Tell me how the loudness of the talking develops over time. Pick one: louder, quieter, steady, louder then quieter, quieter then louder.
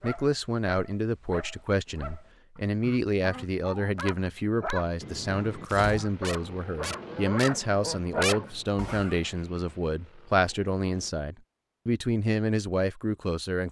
steady.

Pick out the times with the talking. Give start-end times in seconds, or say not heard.
0.0-13.6.